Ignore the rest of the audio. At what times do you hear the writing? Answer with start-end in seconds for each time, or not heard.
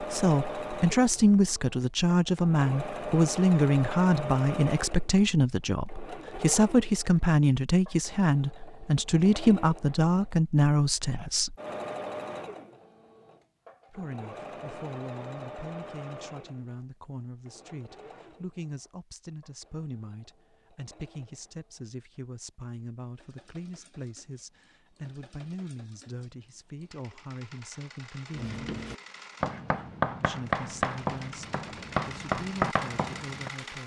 28.4-33.5.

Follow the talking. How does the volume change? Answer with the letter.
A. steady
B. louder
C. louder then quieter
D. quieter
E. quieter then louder
D.